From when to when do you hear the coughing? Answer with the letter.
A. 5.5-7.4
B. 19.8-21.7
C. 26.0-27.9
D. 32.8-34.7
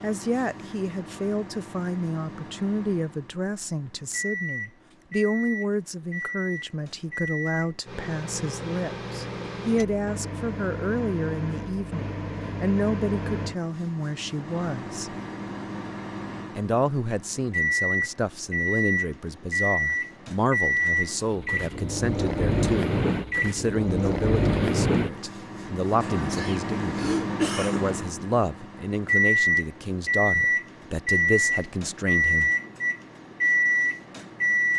C.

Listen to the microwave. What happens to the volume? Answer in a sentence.
The volume of the microwave goes up.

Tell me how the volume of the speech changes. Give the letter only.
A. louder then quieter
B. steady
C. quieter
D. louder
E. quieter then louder
B.